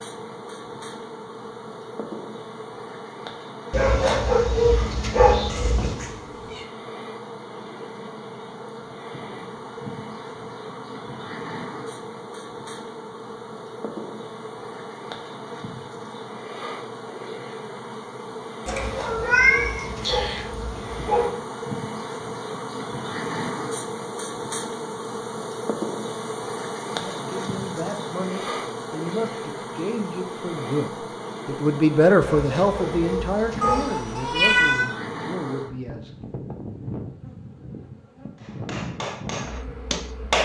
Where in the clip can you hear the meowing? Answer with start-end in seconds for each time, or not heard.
5.5-6.7, 18.6-20.4, 33.6-34.9.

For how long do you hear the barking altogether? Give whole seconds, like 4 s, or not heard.
7 s.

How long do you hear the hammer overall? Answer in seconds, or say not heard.
2 s.